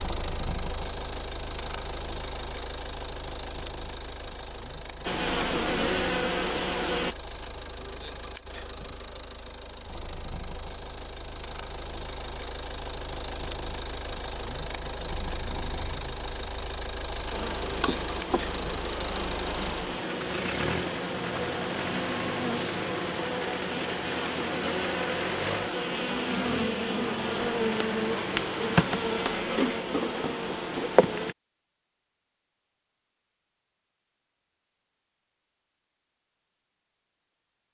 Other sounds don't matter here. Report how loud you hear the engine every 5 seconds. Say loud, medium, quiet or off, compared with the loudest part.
loud, medium, loud, loud, loud, loud, off, off.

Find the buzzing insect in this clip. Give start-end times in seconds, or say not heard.
5.0-7.2, 17.3-31.4.